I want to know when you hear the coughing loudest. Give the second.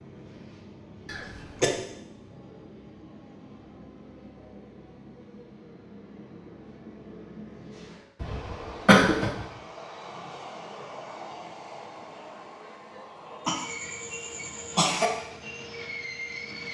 9 s.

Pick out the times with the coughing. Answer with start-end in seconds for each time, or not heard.
1.1-1.8, 8.2-9.3, 13.4-15.1.